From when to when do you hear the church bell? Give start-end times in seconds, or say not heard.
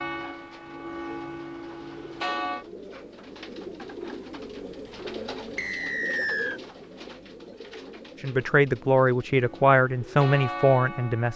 0.0-2.6, 9.3-11.3.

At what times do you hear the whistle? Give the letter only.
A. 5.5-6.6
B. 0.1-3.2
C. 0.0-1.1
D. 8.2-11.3
A.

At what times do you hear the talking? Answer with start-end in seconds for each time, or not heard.
8.2-11.3.